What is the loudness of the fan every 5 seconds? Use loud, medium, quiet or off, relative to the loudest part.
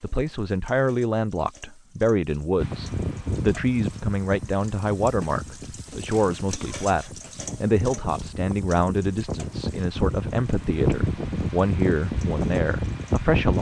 medium, medium, loud.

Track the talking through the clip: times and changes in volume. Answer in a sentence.
The talking can be heard from 0.0 to 13.5 s, at a steady volume.